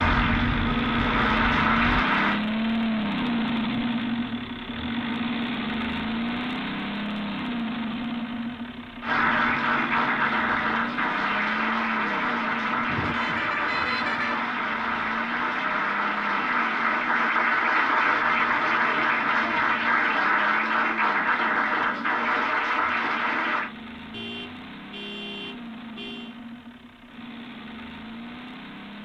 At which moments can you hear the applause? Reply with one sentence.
The applause can be heard from 0.0 to 2.4 s and from 9.0 to 23.7 s.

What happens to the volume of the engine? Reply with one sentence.
The loudness of the engine goes down.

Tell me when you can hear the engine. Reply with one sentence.
The engine can be heard from 0.0 to 29.0 s.